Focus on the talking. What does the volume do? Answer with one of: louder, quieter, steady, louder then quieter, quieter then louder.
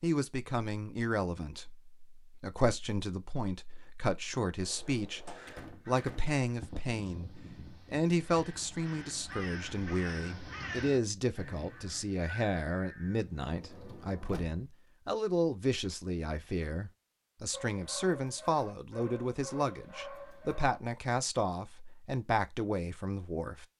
steady.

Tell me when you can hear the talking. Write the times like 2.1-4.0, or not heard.
0.0-23.6.